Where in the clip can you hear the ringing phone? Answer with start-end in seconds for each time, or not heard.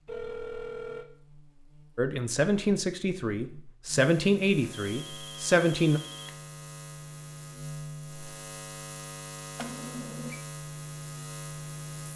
0.1-1.1, 4.7-6.3, 9.6-10.4.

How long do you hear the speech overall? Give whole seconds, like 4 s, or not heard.
4 s.